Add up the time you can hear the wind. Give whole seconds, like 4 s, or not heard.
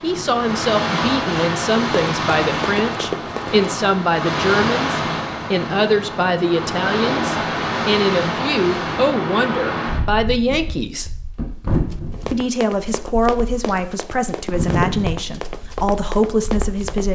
17 s.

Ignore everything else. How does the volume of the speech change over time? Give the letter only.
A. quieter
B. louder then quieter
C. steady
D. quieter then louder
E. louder
C.